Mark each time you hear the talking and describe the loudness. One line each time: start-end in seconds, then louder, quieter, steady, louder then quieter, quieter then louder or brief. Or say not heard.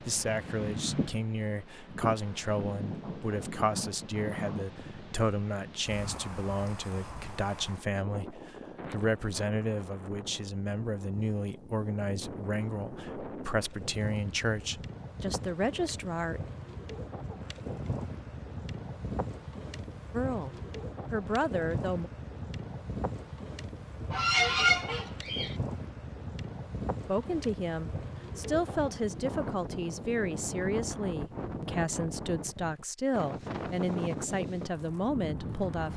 0.0-16.4 steady
20.1-22.1 brief
27.1-35.9 steady.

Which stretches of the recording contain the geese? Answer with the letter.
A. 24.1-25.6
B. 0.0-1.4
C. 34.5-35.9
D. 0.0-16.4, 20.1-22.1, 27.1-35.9
A.